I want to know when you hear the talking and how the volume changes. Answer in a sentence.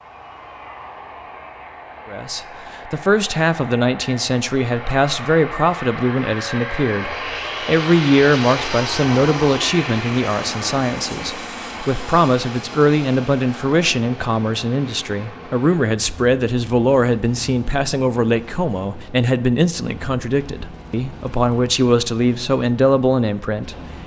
You can hear the talking from 2.0 to 23.8 s, at a steady volume.